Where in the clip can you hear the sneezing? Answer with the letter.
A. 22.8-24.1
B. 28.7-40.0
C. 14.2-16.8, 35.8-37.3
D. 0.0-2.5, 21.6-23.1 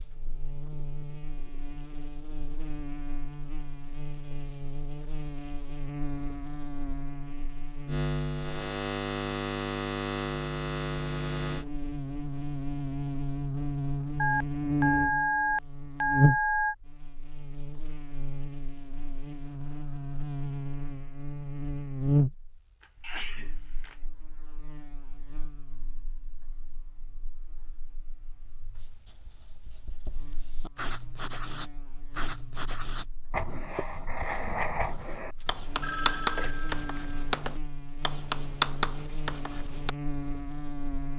A.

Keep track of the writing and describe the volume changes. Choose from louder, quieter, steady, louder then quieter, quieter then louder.
louder.